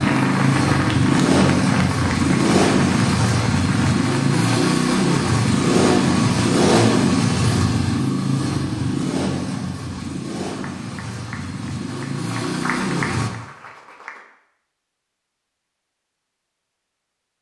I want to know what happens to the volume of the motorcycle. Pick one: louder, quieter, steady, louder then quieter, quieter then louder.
quieter.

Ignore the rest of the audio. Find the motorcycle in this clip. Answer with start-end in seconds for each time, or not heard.
0.0-13.3.